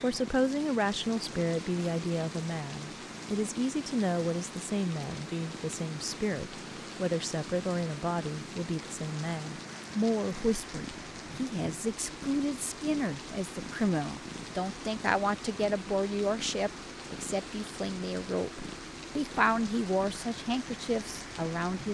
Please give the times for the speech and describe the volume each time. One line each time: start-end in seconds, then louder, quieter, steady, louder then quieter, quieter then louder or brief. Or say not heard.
0.0-21.8 steady.